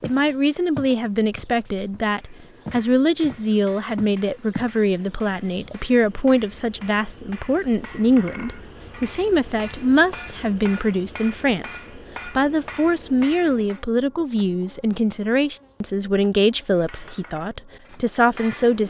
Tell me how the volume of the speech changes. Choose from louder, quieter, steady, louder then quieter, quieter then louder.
steady.